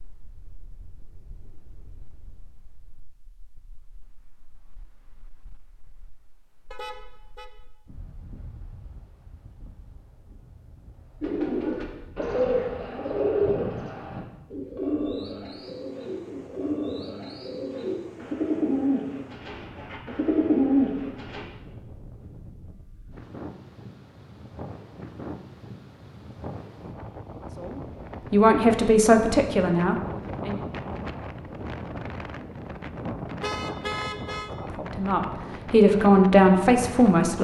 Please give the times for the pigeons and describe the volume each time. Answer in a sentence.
You can hear the pigeons from 11.2 to 21.4 s, getting quieter then louder.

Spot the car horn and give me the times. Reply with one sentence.
You can hear the car horn from 6.7 to 7.5 s and from 33.4 to 34.5 s.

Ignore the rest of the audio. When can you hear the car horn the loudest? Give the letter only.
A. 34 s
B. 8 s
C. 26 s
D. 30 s
A.